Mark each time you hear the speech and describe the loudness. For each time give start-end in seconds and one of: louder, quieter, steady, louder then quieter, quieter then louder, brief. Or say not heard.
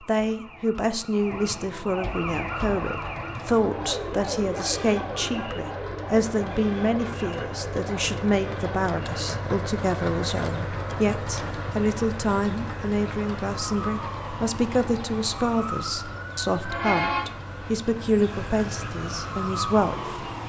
0.1-20.2 steady.